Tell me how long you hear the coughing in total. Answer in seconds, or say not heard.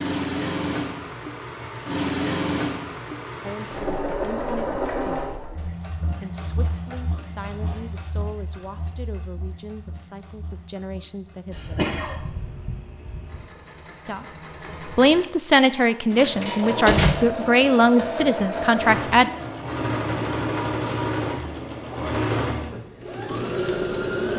2 s.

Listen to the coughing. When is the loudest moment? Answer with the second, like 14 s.
12 s.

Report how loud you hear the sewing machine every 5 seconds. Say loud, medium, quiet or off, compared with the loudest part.
loud, medium, quiet, loud, loud.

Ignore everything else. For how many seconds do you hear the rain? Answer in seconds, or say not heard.
not heard.